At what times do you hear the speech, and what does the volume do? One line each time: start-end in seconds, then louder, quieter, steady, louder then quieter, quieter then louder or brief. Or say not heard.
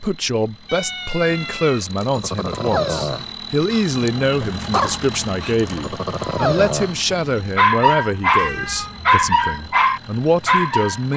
0.0-11.1 steady.